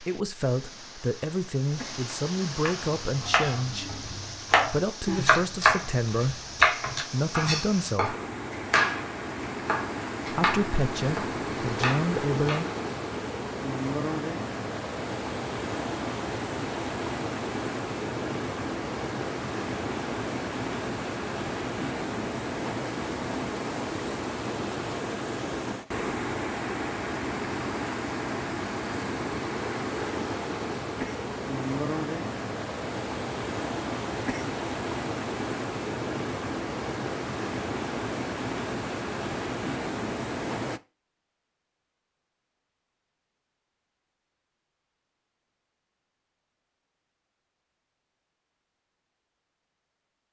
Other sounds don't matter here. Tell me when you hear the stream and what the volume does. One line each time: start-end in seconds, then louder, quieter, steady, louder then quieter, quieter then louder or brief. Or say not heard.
0.0-40.8 louder.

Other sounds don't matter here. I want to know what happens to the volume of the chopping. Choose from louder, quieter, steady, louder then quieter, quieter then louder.
louder then quieter.